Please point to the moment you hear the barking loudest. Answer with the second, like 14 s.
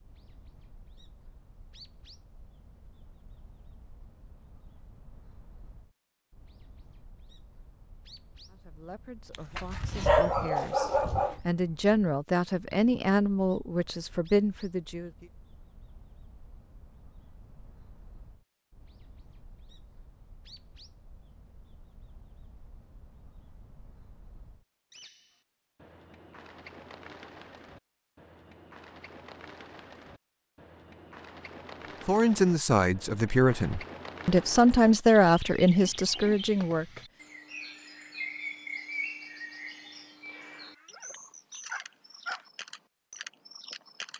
10 s.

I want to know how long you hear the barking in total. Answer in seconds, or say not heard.
4 s.